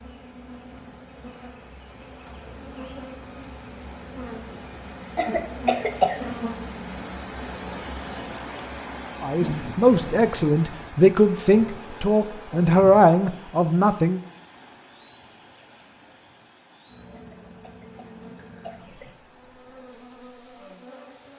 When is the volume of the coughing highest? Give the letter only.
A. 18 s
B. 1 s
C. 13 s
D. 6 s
D.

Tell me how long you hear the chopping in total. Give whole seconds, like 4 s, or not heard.
not heard.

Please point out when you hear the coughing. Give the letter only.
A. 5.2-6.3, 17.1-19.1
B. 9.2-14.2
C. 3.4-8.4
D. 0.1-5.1
A.